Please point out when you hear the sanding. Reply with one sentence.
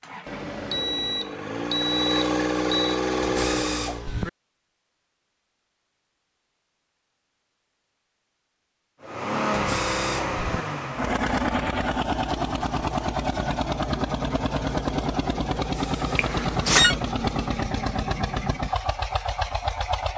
You can't hear the sanding here.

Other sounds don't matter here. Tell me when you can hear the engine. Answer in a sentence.
The engine can be heard from 0.0 to 4.0 s and from 9.0 to 20.1 s.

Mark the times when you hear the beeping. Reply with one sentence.
You can hear the beeping from 0.2 to 3.0 s and from 16.1 to 16.9 s.